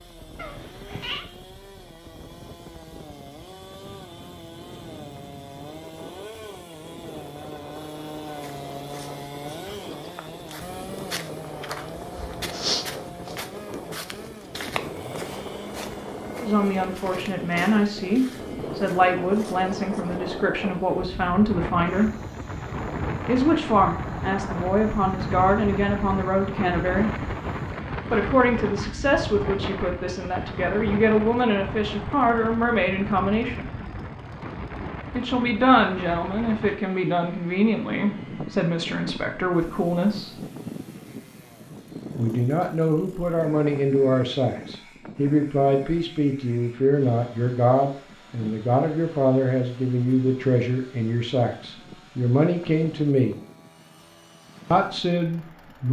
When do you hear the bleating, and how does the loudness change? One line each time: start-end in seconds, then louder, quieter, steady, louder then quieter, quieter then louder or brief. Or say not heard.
not heard.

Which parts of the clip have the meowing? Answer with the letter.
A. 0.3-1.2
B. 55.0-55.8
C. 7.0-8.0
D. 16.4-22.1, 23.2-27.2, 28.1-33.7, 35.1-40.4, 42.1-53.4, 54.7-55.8
A.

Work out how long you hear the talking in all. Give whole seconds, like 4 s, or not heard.
33 s.